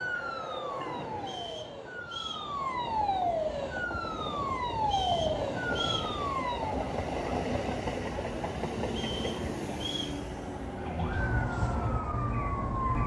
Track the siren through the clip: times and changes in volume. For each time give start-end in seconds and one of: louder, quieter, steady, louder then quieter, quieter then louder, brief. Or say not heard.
0.0-6.8 louder
10.8-13.0 brief.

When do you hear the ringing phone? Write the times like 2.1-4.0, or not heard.
not heard.